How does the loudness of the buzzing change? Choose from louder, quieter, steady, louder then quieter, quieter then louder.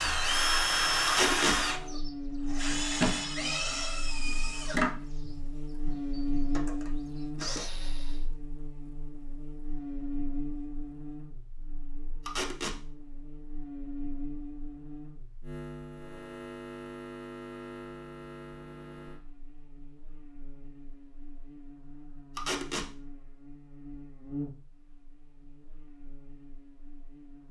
quieter.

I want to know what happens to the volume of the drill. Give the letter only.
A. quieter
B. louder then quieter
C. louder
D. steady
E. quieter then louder
A.